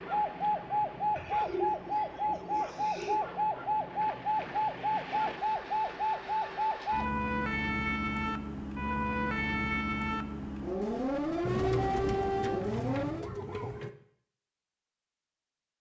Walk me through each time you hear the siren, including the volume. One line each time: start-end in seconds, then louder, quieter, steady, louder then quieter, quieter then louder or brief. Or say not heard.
0.0-13.3 steady.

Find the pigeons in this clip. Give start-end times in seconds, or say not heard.
1.1-3.2, 11.4-13.9.